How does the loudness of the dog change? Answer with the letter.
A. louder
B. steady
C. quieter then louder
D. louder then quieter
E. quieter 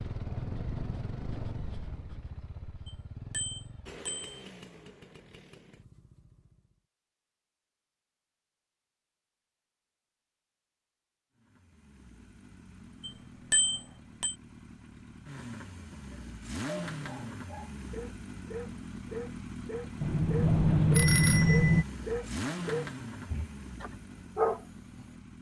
A.